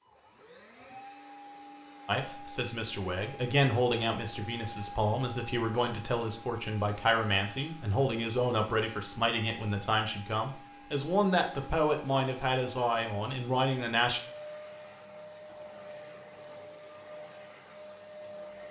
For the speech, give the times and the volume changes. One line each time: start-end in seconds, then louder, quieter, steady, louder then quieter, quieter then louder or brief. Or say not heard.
2.0-14.2 steady.